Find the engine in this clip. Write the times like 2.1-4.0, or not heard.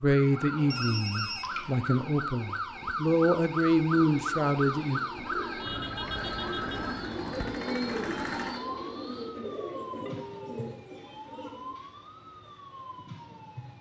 6.1-8.7.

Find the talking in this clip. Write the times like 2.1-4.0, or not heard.
0.0-5.0.